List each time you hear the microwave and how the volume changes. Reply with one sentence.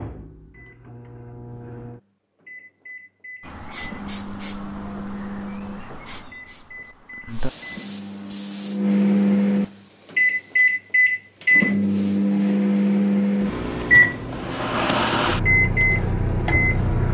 You can hear the microwave from 0.0 to 17.1 s, getting louder.